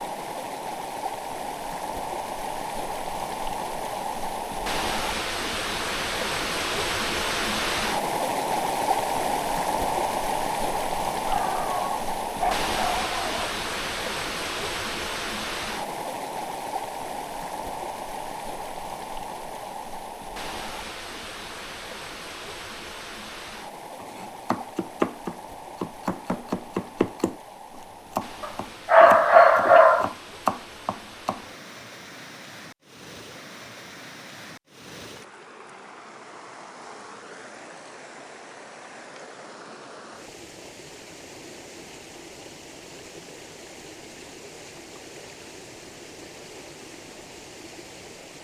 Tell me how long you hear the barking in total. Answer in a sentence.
You can hear the barking for 4 seconds altogether.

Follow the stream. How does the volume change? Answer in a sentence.
The loudness of the stream goes down.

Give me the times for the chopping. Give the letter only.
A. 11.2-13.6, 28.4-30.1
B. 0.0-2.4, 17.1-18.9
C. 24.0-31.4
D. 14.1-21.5
C.